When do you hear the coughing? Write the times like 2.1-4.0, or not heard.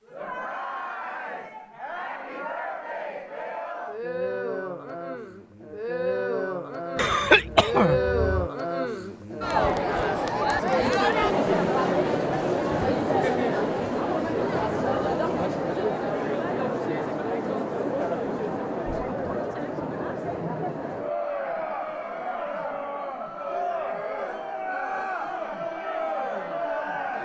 7.0-8.3.